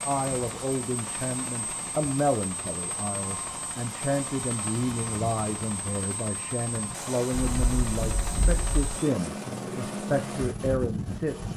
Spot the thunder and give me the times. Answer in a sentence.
The thunder can be heard from 7.3 to 9.0 s.